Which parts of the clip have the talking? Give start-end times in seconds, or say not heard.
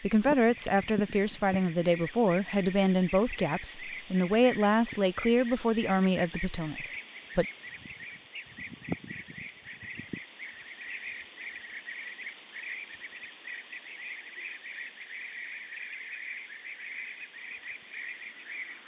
0.0-7.5.